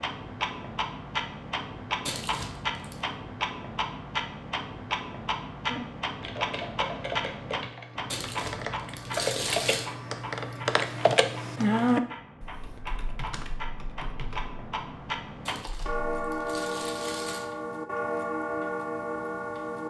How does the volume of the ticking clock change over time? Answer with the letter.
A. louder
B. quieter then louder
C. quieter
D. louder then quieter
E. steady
B.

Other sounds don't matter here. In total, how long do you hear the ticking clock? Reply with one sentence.
You can hear the ticking clock for 20 seconds altogether.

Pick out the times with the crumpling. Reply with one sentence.
You can hear the crumpling from 2.0 to 3.0 s, from 8.1 to 9.8 s and from 15.4 to 17.5 s.